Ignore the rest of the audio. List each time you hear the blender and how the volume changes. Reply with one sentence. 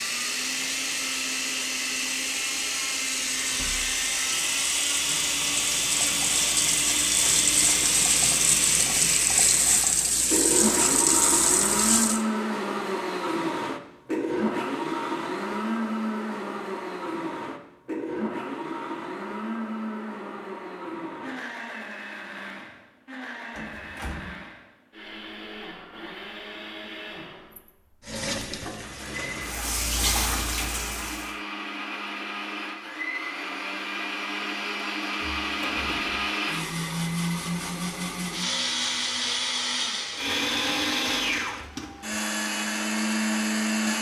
You can hear the blender from 0.0 to 43.9 s, getting quieter then louder.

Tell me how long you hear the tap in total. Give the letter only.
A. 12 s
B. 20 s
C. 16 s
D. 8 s
C.